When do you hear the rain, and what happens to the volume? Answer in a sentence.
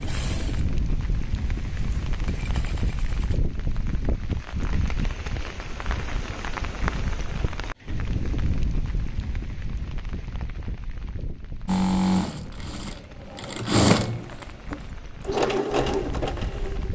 You can hear the rain from 0.0 to 16.9 s, getting quieter.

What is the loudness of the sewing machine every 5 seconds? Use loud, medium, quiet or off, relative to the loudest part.
quiet, off, loud, loud.